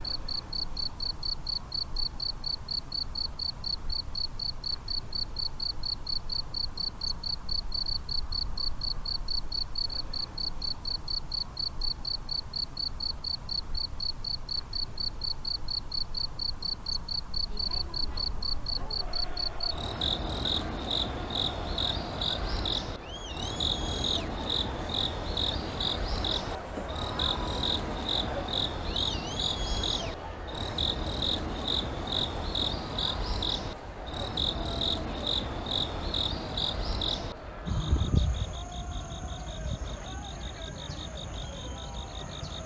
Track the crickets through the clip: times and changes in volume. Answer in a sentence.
You can hear the crickets from 0.0 to 42.6 s, at a steady volume.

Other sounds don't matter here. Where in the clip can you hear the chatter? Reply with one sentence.
You can hear the chatter from 17.4 to 42.6 s.